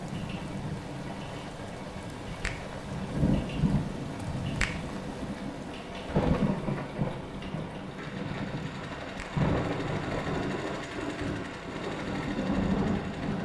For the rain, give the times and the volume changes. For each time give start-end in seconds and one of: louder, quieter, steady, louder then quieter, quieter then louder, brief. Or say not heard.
0.0-13.4 louder.